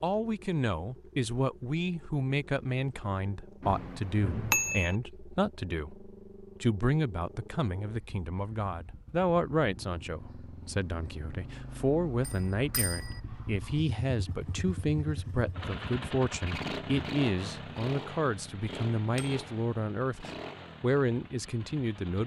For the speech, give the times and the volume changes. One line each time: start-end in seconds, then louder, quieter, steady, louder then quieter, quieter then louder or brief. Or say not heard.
0.0-22.2 steady.